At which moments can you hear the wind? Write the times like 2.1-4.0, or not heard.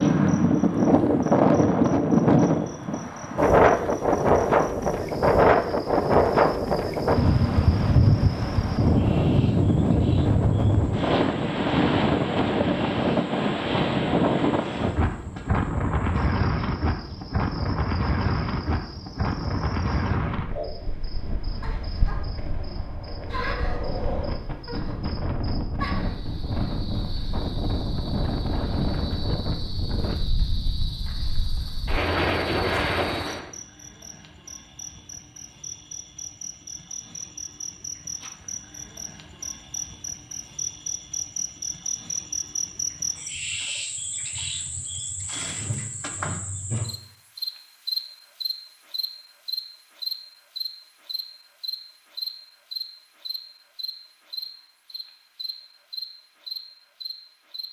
0.0-33.5.